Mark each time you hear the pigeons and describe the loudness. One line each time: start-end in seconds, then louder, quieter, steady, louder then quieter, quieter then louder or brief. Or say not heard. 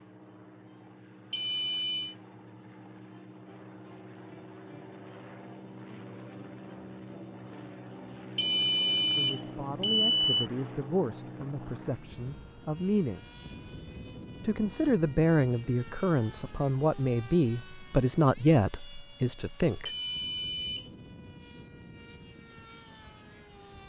not heard.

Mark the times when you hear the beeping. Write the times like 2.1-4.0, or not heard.
1.3-2.1, 8.3-10.5, 19.9-20.9.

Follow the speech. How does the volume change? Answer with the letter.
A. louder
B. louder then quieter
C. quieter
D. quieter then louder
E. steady
A.